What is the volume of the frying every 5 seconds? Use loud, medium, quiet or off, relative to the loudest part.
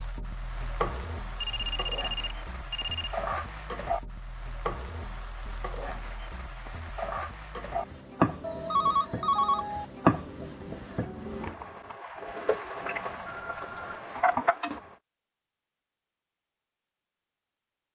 medium, loud, loud, off.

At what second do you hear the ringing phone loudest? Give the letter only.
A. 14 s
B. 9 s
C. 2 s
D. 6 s
B.